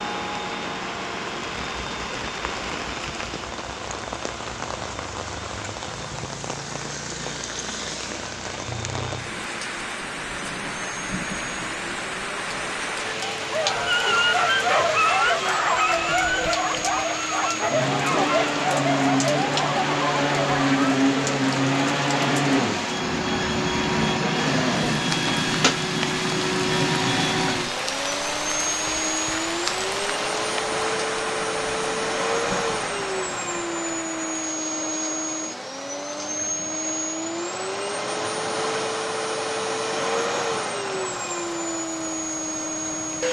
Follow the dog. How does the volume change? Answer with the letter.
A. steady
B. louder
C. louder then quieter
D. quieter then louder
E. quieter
E.